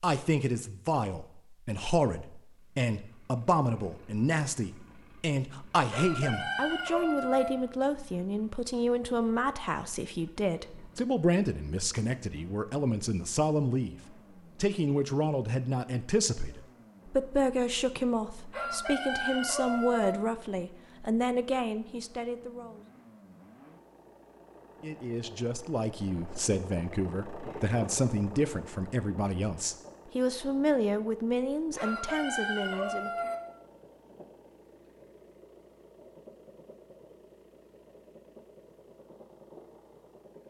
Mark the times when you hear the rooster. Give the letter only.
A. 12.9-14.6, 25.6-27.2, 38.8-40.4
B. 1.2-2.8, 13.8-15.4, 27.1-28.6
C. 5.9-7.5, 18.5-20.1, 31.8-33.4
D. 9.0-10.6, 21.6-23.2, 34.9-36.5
C.